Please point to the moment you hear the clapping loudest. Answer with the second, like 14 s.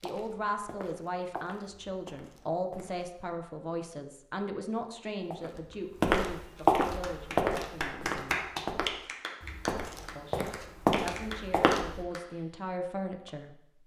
8 s.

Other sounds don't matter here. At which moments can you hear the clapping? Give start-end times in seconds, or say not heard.
7.0-12.2.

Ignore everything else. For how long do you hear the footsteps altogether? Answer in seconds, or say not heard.
10 s.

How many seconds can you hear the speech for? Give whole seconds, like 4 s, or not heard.
12 s.